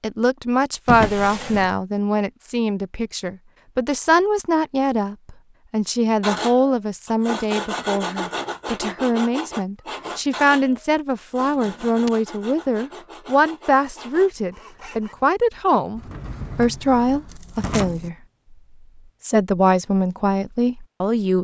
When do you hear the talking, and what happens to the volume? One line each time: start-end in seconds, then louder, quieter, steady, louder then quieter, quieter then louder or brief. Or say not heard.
0.0-18.1 steady
19.2-21.3 brief.